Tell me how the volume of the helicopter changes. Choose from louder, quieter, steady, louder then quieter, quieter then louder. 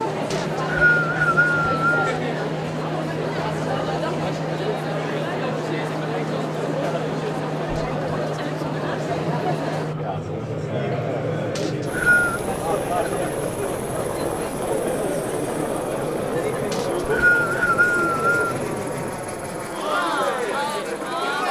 steady.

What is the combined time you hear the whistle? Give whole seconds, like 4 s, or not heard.
4 s.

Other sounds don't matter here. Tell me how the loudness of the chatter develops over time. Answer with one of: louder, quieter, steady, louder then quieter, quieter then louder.
steady.